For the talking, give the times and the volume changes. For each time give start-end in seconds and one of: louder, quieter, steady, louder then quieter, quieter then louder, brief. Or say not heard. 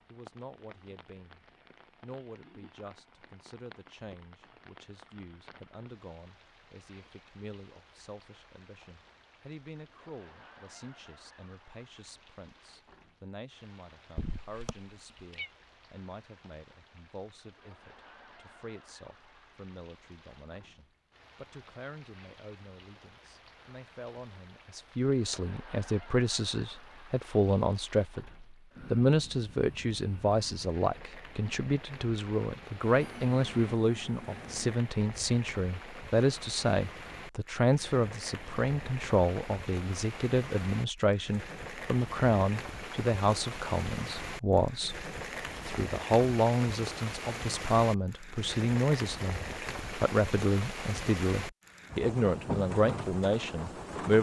0.1-54.1 louder.